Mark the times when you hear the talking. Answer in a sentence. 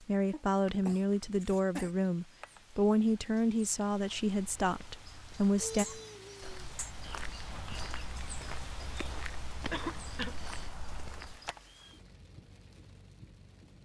You can hear the talking from 0.0 to 5.8 s.